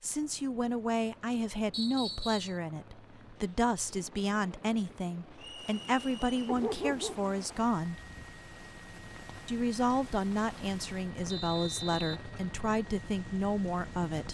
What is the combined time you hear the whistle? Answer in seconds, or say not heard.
3 s.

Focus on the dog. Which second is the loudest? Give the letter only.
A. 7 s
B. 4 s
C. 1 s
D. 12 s
A.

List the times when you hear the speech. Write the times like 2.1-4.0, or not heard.
0.0-8.0, 9.4-14.2.